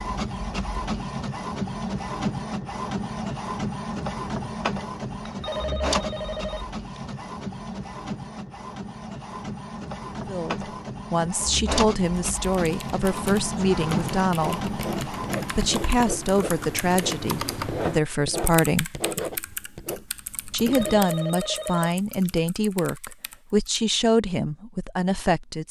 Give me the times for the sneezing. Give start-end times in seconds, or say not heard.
not heard.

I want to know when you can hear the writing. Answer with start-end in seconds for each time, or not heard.
13.6-21.1.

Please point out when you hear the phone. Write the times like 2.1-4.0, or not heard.
5.2-6.8, 20.5-22.4.